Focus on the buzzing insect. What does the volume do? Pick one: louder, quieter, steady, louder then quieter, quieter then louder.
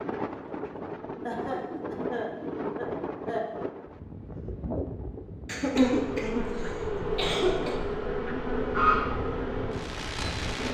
louder then quieter.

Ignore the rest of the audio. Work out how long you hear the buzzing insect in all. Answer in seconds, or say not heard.
5 s.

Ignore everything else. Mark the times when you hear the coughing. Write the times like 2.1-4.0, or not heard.
1.2-3.5, 5.5-7.8.